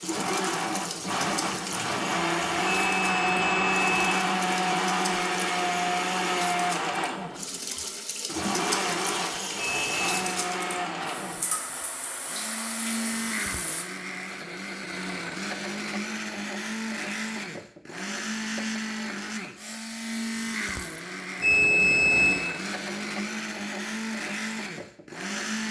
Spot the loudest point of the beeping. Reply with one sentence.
The loudest moment of the beeping is at 22 seconds.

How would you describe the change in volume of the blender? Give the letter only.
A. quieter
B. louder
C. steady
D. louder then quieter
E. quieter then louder
A.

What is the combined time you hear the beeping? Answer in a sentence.
The beeping can be heard for 3 seconds in total.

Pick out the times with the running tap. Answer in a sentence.
You can hear the running tap from 0.0 to 13.8 s.